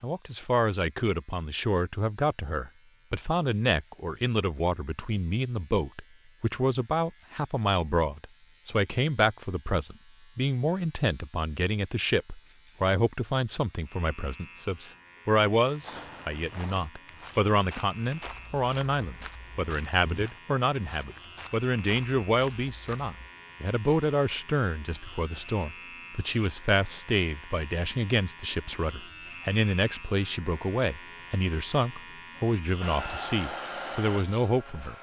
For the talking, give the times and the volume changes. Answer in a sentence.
The talking can be heard from 0.0 to 34.9 s, at a steady volume.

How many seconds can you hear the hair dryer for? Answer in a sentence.
You can hear the hair dryer for 2 seconds altogether.